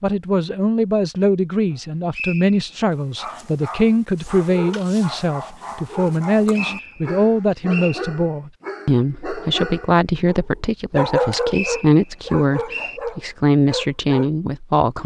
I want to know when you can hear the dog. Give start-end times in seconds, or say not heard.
2.9-14.3.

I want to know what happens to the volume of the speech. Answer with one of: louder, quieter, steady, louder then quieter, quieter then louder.
steady.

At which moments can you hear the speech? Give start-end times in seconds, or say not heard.
0.0-15.0.